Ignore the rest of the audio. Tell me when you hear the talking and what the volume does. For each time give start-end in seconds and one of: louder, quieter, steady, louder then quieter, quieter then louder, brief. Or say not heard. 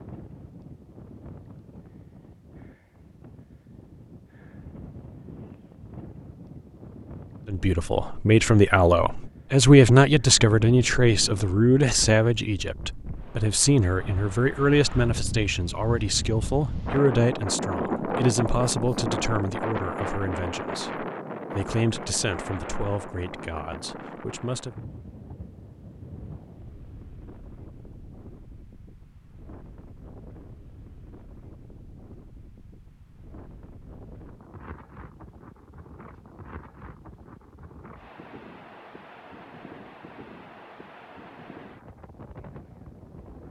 7.5-24.8 quieter.